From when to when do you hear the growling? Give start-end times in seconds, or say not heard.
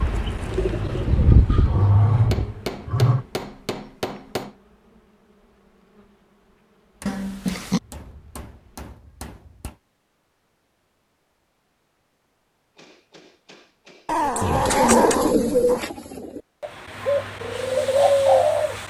0.8-3.2, 7.0-7.8, 14.1-15.8.